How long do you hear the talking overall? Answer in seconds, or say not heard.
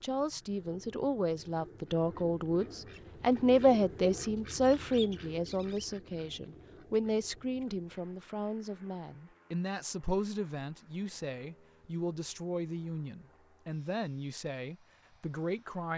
16 s.